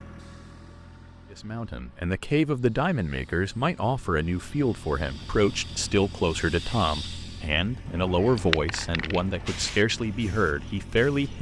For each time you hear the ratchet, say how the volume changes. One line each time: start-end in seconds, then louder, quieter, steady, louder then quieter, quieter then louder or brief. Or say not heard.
not heard.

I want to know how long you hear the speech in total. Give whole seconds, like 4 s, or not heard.
10 s.